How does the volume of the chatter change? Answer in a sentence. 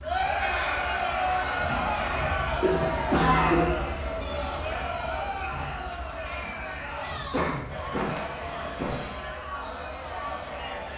The loudness of the chatter goes down.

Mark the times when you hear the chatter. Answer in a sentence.
You can hear the chatter from 0.0 to 10.9 s.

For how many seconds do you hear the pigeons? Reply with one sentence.
You can't hear the pigeons here.